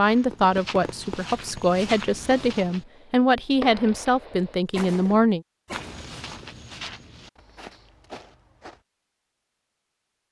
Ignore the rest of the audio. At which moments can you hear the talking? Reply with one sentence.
The talking can be heard from 0.0 to 5.4 s.